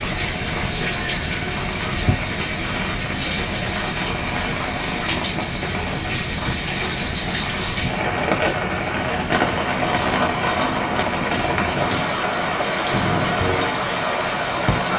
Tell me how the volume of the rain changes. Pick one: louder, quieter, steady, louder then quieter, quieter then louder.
steady.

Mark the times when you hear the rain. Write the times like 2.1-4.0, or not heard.
0.0-14.9.